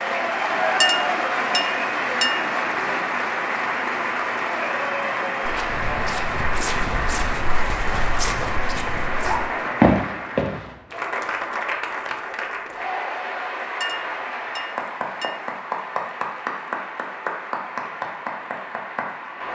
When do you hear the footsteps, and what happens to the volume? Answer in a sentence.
You can hear the footsteps from 5.5 to 10.7 s, getting louder.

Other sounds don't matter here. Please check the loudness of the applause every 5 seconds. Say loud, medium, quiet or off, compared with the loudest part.
loud, loud, medium, medium.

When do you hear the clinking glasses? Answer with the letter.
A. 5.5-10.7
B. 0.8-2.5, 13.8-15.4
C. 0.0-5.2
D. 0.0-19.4
B.